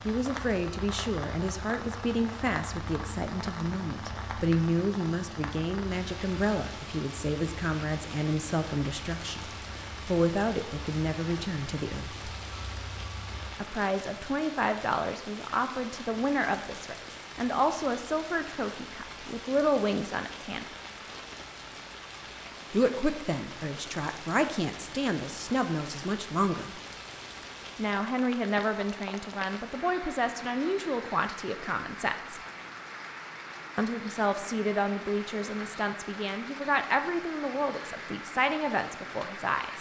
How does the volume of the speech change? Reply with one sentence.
The loudness of the speech stays about the same.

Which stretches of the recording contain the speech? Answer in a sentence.
You can hear the speech from 0.1 to 12.3 s, from 13.6 to 20.6 s, from 22.7 to 26.8 s, from 27.8 to 32.4 s and from 33.8 to 39.7 s.